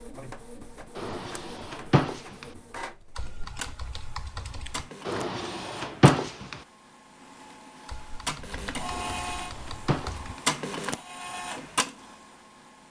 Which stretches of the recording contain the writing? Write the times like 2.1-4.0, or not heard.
not heard.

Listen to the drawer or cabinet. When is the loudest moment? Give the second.
6 s.